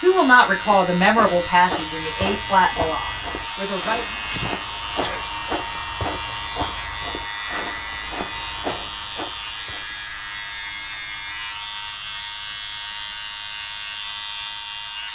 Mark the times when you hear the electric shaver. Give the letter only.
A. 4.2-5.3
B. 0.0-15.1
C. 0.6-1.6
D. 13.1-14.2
B.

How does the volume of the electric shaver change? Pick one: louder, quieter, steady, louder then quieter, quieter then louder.
steady.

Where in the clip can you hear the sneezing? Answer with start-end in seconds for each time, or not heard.
4.2-5.3.